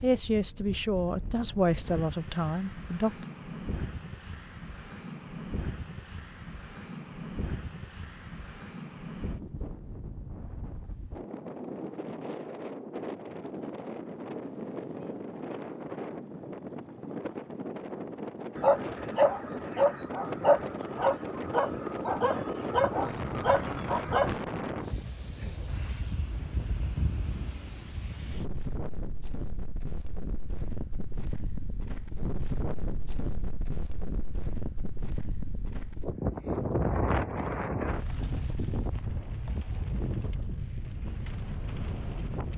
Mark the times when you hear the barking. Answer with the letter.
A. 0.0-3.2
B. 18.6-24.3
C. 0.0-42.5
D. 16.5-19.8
B.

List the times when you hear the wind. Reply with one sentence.
The wind can be heard from 0.0 to 42.5 s.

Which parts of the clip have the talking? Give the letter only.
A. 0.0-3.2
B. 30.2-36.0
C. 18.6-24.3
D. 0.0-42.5
A.